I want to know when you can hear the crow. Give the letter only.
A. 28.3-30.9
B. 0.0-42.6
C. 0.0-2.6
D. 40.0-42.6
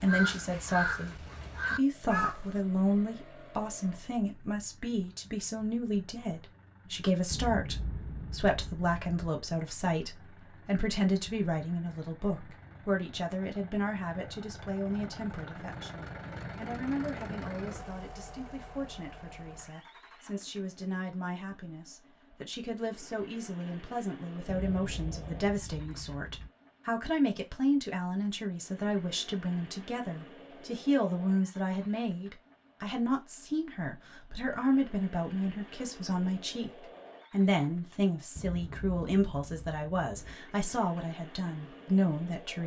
C.